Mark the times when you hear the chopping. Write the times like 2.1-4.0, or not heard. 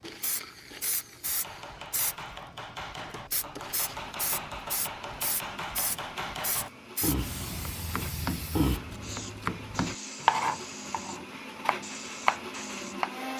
1.2-13.2.